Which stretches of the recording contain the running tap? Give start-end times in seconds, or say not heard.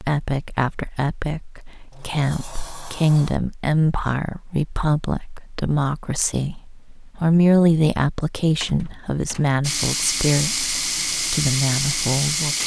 9.6-12.6.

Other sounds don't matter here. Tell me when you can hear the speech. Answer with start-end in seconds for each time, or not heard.
0.0-12.6.